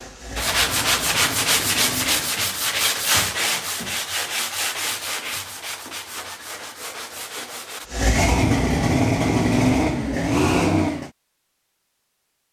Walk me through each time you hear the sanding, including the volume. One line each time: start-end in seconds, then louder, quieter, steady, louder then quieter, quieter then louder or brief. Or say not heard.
0.3-7.9 quieter.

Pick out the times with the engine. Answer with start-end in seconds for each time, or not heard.
0.0-2.5, 7.8-11.1.